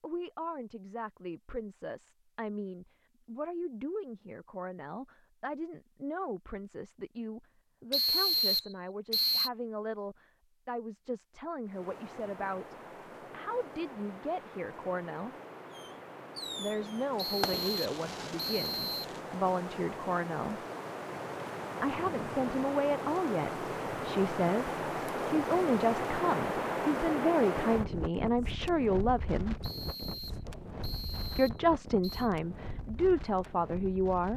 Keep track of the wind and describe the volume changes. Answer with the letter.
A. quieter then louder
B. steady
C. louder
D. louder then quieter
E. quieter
D.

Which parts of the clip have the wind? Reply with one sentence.
You can hear the wind from 11.7 to 34.3 s.